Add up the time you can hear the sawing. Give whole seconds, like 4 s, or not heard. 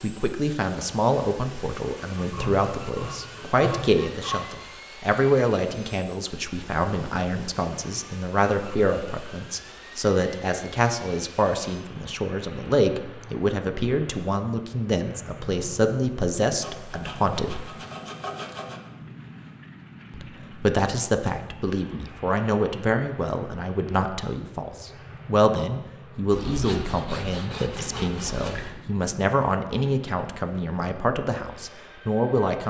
7 s.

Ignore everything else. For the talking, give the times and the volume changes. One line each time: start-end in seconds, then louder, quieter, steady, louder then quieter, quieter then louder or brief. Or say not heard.
0.0-17.6 steady
20.1-32.6 steady.